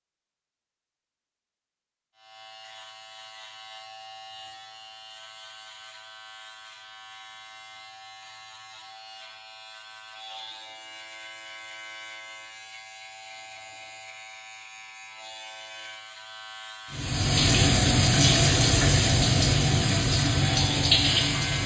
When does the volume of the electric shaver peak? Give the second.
21 s.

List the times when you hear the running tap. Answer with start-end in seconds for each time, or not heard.
16.9-21.6.